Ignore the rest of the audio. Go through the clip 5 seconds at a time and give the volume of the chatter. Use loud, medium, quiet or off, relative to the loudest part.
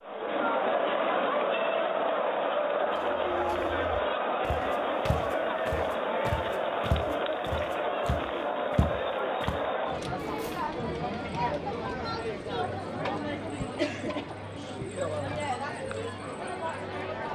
loud, loud, medium, medium.